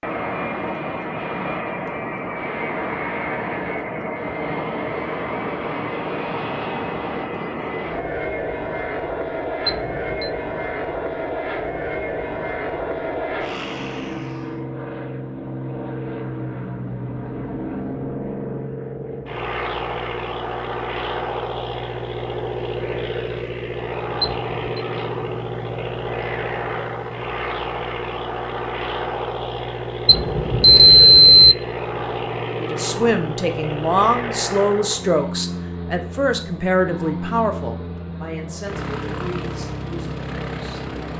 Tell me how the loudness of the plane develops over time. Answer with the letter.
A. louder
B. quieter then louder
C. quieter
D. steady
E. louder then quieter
D.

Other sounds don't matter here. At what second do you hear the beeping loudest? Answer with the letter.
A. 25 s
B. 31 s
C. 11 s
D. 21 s
B.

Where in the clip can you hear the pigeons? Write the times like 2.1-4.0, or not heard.
not heard.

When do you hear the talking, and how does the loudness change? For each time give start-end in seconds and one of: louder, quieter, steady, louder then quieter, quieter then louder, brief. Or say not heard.
32.5-40.8 quieter.